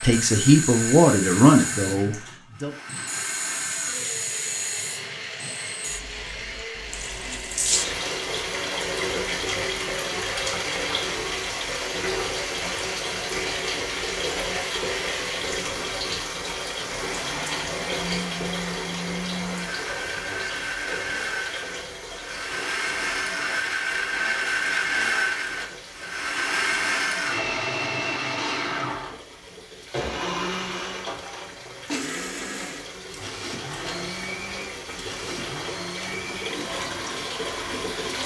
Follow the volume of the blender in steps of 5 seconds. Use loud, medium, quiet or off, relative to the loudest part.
medium, medium, medium, medium, loud, loud, medium, medium.